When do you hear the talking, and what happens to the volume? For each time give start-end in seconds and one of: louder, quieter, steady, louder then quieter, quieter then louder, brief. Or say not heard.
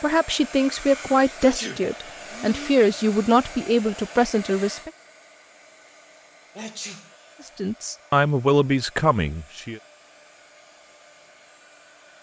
0.0-4.9 steady
7.5-9.8 brief.